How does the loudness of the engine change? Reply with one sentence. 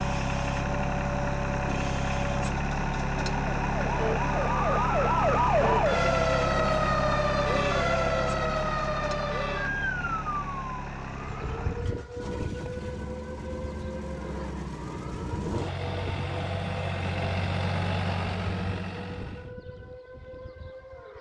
The volume of the engine goes down, then up.